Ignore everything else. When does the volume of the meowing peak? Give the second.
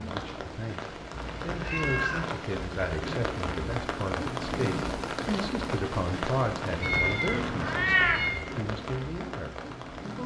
8 s.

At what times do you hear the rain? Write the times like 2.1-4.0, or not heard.
0.0-10.2.